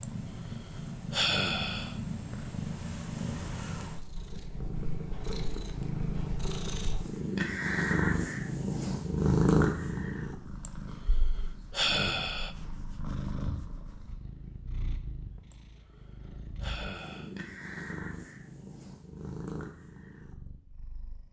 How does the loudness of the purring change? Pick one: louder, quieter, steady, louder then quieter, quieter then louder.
louder then quieter.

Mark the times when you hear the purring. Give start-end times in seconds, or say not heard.
0.0-21.2.